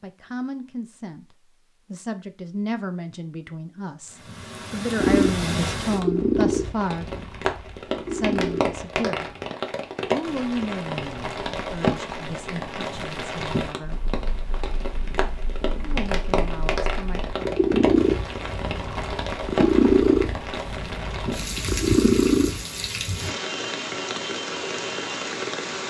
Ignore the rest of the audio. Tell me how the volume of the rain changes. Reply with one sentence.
The loudness of the rain stays about the same.